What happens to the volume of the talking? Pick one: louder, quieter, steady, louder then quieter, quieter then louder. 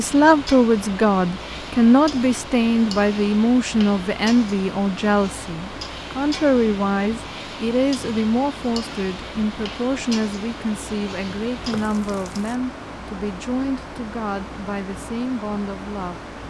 quieter.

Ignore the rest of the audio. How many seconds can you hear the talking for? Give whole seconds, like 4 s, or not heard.
16 s.